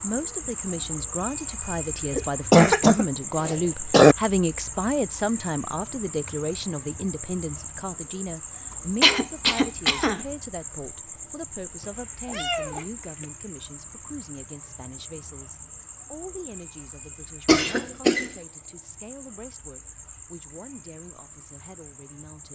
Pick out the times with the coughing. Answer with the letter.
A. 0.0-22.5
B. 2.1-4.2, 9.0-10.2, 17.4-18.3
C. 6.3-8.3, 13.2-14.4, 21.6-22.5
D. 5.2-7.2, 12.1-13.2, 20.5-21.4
B.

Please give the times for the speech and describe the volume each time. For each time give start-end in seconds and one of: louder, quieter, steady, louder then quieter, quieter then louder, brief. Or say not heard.
0.0-22.5 quieter.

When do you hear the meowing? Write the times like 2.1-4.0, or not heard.
11.8-13.2.